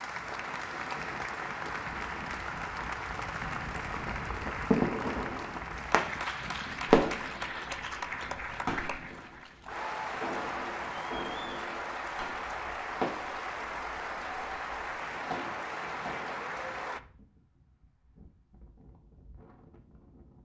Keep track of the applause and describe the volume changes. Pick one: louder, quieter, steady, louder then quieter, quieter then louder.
steady.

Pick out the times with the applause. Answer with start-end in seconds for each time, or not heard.
0.0-17.0.